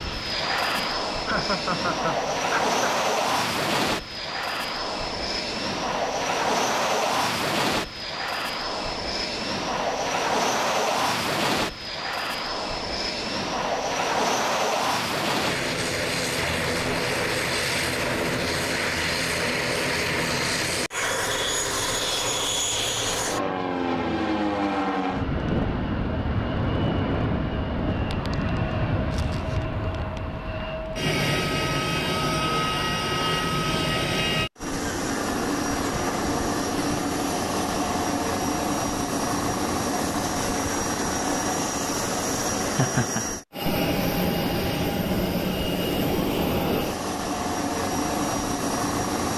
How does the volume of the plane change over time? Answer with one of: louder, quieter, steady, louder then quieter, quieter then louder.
steady.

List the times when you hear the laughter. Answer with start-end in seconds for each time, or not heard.
0.8-3.0, 42.6-43.2.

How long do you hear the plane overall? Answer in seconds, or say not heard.
49 s.